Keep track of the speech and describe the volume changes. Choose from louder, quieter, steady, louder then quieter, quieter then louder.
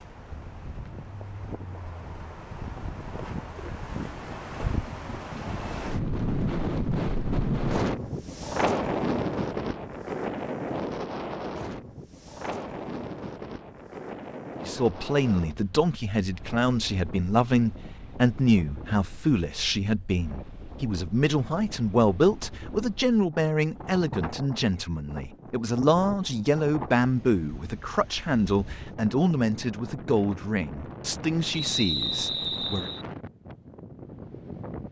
steady.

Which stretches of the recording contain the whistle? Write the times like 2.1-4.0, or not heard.
31.6-33.0.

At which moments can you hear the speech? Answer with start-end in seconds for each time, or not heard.
14.6-32.9.